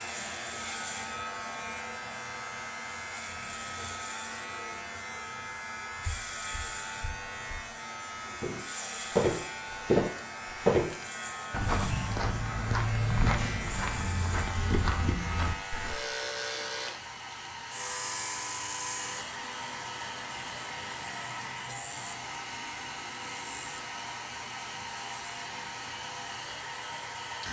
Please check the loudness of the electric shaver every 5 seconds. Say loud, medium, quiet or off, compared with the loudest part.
loud, loud, loud, loud, medium, medium.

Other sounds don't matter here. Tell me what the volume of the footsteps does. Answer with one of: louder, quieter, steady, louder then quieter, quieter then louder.
louder then quieter.